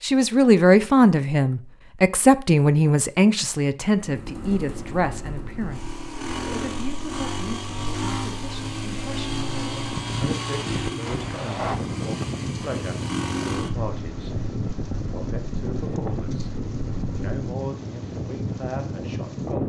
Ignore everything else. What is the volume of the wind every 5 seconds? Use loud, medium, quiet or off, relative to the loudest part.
off, medium, loud, loud.